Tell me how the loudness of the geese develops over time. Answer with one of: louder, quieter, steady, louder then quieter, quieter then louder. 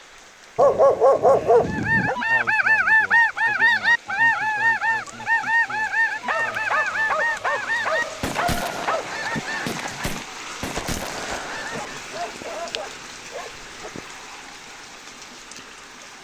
quieter.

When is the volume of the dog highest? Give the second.
1 s.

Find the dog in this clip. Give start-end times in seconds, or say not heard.
0.6-2.1, 6.2-9.1, 11.7-13.9.